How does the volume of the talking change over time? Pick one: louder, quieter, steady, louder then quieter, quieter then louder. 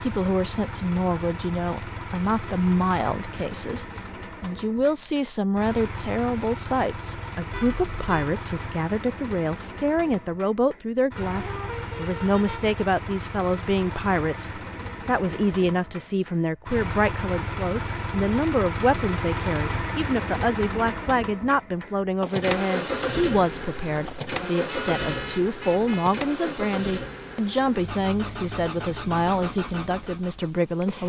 steady.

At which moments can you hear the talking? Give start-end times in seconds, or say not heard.
0.0-31.0.